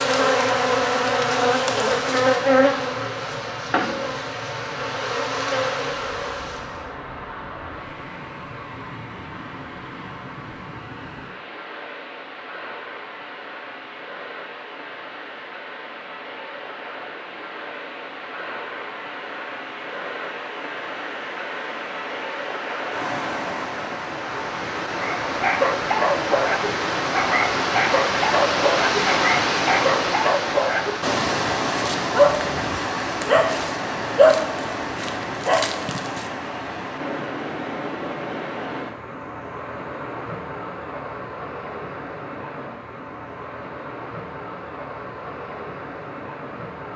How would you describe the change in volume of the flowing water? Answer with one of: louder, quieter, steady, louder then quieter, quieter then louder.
louder then quieter.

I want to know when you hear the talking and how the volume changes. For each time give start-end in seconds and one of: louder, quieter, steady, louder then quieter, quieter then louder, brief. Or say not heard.
not heard.